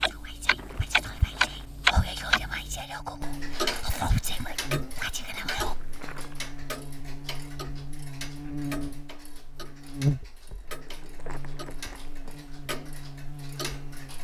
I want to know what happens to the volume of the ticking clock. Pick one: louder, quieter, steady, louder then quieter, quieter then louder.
quieter.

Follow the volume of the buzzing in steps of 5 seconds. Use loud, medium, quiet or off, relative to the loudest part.
medium, medium, loud.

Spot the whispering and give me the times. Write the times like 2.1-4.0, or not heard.
0.1-5.8.